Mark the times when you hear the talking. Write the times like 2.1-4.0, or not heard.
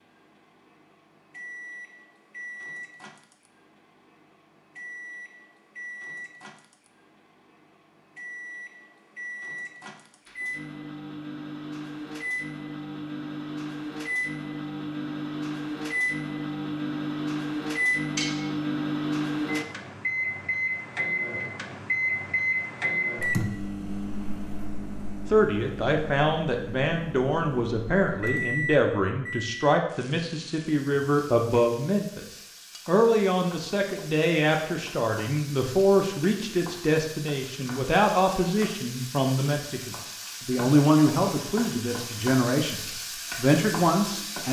25.2-32.2, 32.9-44.4.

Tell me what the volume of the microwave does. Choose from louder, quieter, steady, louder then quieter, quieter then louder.
louder then quieter.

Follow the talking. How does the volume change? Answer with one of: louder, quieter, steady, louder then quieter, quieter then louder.
steady.